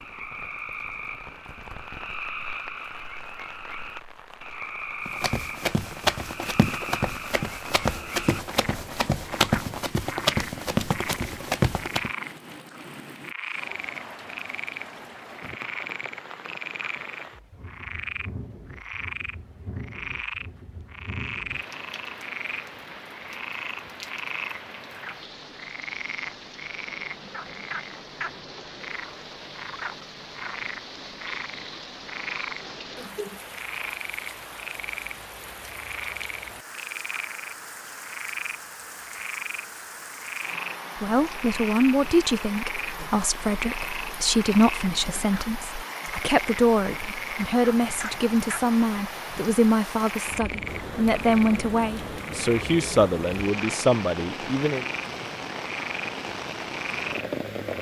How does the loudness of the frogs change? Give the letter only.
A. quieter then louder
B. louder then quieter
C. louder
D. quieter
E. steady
E.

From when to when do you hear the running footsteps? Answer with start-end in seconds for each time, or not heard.
5.0-12.1.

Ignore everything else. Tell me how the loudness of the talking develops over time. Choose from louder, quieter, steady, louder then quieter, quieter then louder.
steady.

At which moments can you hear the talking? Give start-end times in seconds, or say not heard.
41.0-54.9.